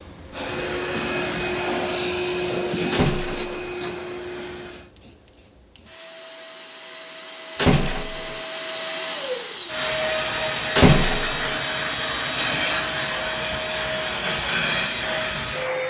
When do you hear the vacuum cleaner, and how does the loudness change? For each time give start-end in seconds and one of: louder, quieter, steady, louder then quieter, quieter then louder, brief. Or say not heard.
0.0-15.8 quieter then louder.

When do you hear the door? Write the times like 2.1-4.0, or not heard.
2.9-3.7, 7.5-8.4, 10.8-11.6.